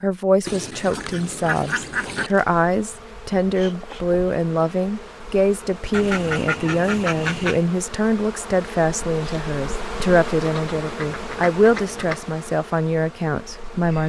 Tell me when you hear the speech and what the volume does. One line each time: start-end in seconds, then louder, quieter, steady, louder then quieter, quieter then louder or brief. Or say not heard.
0.0-14.0 steady.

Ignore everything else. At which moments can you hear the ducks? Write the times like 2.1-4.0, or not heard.
0.5-2.3, 5.9-7.7, 10.3-12.2.